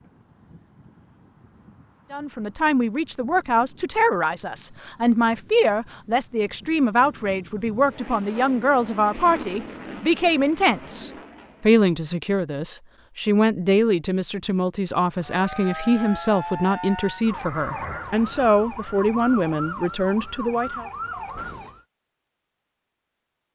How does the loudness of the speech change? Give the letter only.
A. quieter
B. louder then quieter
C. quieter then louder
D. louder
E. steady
E.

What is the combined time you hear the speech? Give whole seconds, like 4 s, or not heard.
19 s.